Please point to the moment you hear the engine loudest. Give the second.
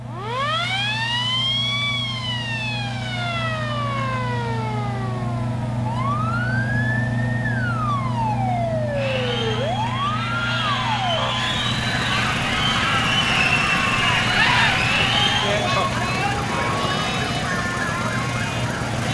7 s.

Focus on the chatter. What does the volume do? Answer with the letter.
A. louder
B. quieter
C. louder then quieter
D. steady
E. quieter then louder
C.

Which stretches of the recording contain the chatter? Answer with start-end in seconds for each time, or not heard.
8.9-19.0.